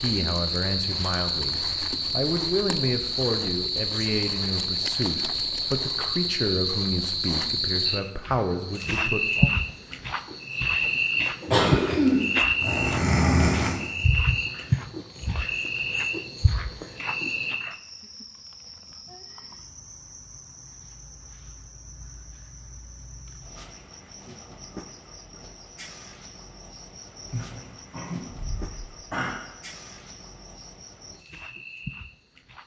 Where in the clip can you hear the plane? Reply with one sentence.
You can't hear the plane here.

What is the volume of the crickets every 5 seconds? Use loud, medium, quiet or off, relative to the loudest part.
loud, loud, loud, medium, quiet, quiet, quiet.